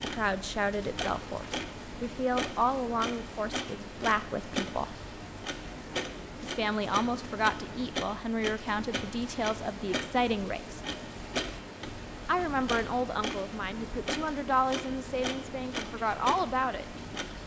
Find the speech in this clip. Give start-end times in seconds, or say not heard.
0.0-5.0, 6.4-10.8, 12.2-16.9.